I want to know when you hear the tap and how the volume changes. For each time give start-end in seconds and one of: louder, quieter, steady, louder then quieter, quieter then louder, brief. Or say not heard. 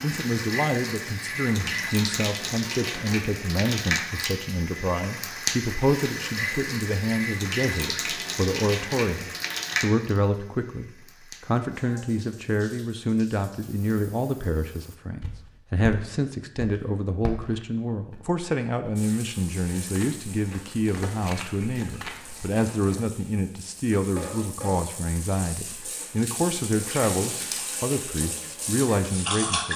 0.0-15.0 quieter
18.9-29.7 louder.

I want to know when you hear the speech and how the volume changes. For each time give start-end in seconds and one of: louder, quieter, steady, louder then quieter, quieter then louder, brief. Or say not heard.
0.0-29.7 steady.